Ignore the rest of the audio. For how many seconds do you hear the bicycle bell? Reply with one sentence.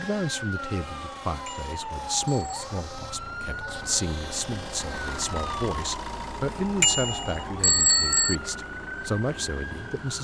The bicycle bell can be heard for 3 seconds in total.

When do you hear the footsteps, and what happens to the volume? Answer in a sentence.
You can't hear the footsteps here.